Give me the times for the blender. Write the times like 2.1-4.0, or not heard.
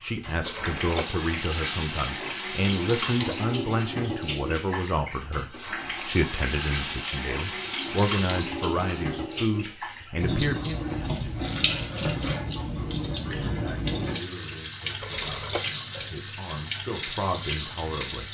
not heard.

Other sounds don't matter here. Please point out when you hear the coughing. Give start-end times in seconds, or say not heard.
not heard.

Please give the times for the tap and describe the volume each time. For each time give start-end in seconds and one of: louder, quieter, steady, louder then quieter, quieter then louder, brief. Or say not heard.
0.0-18.2 steady.